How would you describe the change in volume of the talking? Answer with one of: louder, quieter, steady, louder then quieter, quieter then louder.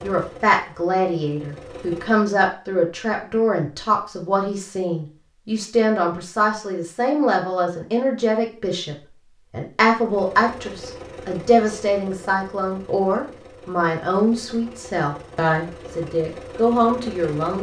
steady.